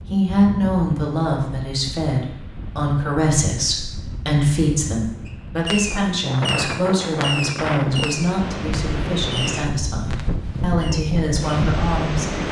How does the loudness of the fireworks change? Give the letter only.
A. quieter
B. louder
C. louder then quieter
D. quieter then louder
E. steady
A.